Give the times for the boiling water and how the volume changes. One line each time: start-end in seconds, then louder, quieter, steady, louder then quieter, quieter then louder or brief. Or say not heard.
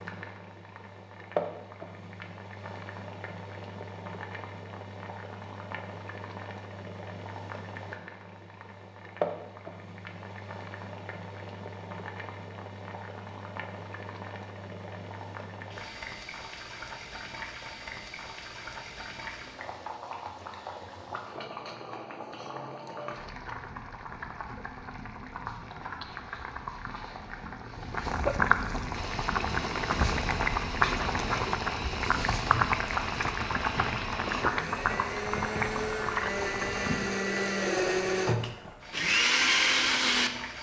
0.0-40.5 louder.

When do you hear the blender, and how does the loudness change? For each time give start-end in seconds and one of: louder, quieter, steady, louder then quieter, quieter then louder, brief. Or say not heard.
28.9-40.3 louder.